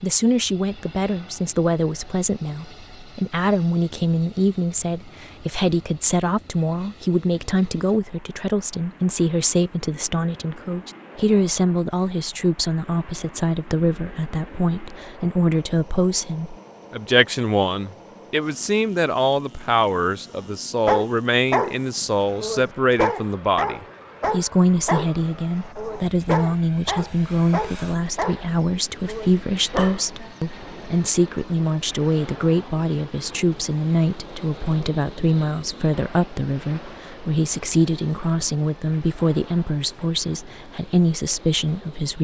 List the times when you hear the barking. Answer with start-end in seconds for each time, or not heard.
20.9-30.3.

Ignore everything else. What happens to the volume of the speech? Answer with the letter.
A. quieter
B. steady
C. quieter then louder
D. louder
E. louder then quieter
B.